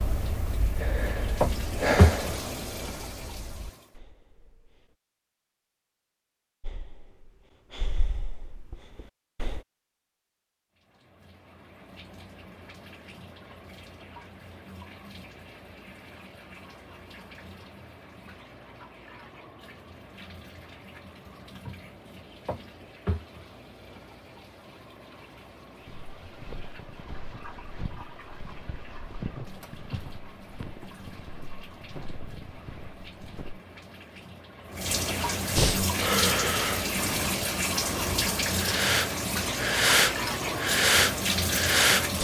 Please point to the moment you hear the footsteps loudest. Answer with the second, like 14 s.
29 s.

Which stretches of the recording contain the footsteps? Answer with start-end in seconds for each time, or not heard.
25.9-33.6.